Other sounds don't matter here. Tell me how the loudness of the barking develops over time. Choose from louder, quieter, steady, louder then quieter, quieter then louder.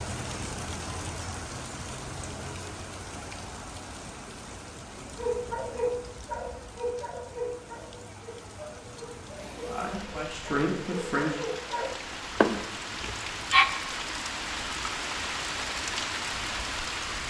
quieter then louder.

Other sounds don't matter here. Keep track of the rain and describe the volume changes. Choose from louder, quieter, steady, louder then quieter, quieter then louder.
quieter then louder.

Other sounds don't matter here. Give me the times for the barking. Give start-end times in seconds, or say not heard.
5.0-13.7.